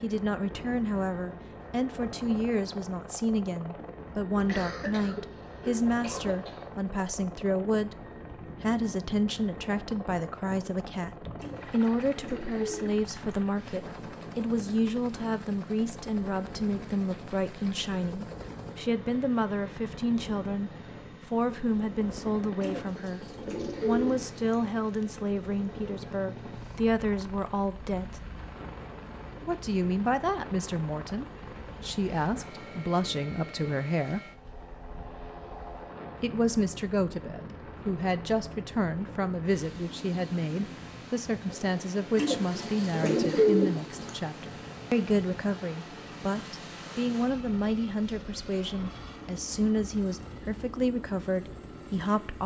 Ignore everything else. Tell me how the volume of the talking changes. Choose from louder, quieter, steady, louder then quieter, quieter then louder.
steady.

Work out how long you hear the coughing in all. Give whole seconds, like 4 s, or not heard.
2 s.